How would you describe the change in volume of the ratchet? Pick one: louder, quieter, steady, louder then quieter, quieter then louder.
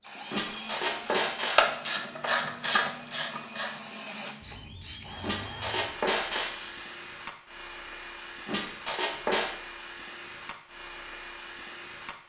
quieter.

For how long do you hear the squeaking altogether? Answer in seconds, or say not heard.
4 s.